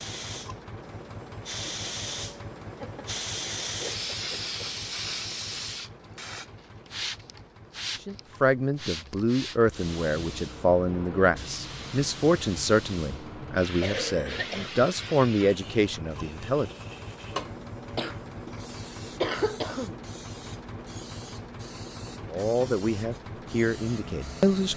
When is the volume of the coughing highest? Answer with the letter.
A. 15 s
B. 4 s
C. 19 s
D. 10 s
C.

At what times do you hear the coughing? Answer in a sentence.
You can hear the coughing from 2.8 to 4.5 s, from 13.8 to 14.7 s and from 17.9 to 19.9 s.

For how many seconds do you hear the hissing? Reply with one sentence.
You can hear the hissing for 25 seconds altogether.